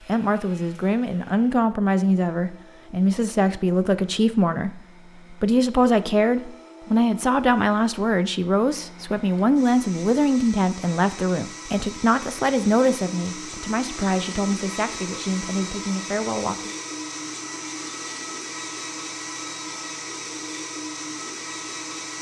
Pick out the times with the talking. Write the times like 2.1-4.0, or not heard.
0.1-16.8.